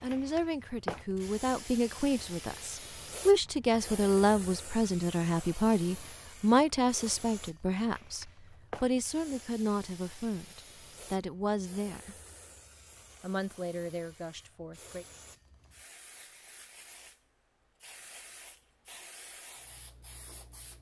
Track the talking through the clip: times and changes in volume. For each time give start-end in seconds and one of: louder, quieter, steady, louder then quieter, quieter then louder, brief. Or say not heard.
0.0-12.2 louder then quieter
13.2-15.1 brief.